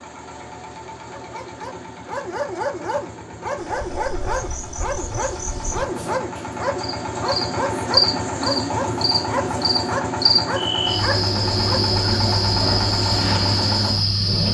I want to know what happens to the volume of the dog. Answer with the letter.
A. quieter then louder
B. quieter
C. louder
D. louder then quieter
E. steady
E.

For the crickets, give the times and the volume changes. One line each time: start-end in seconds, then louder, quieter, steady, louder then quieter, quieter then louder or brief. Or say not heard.
3.6-14.4 louder.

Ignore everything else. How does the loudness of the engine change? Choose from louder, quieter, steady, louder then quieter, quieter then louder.
louder.